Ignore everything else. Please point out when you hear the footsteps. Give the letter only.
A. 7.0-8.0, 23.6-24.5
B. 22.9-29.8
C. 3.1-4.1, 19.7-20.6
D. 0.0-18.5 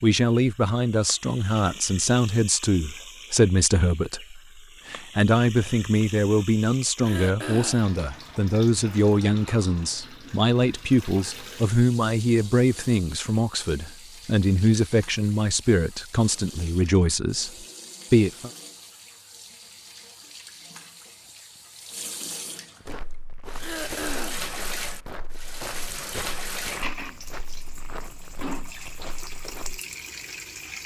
B.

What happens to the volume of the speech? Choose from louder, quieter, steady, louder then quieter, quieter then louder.
steady.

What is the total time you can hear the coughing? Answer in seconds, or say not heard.
2 s.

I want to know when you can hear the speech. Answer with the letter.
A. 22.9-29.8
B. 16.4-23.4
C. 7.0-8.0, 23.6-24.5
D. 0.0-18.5
D.